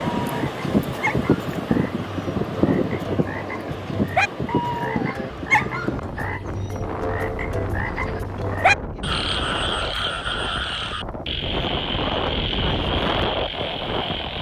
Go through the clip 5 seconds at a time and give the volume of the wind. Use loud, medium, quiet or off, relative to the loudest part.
loud, medium, loud.